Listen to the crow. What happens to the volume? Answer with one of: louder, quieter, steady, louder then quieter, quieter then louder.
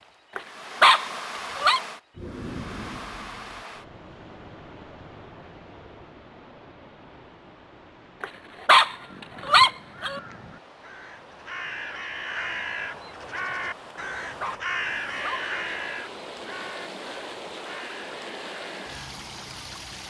louder then quieter.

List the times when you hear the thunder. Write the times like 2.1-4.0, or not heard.
2.1-3.6.